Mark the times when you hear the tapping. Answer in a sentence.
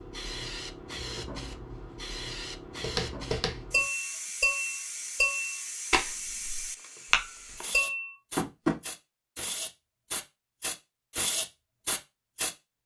The tapping can be heard from 2.8 to 8.8 s.